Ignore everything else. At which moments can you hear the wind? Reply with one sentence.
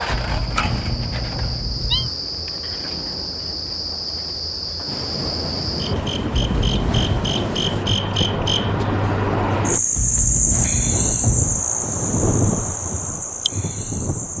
The wind can be heard from 4.8 to 14.3 s.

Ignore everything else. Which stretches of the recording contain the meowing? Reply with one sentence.
The meowing can be heard from 0.1 to 2.1 s, from 6.3 to 7.2 s and from 9.9 to 11.4 s.